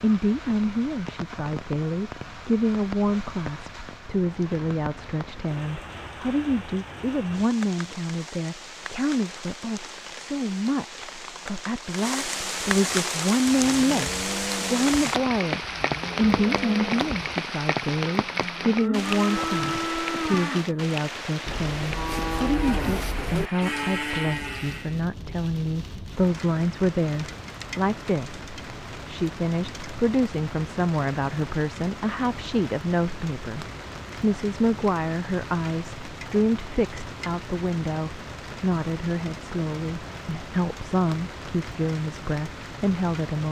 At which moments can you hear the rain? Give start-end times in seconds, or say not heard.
0.0-43.4.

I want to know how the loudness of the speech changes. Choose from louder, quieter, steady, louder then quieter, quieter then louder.
steady.